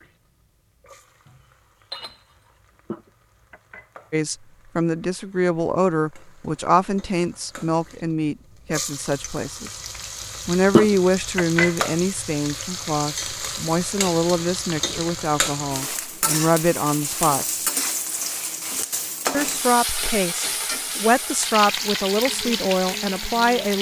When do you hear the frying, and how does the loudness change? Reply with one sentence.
The frying can be heard from 0.0 to 23.7 s, getting louder.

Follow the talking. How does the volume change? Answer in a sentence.
The loudness of the talking stays about the same.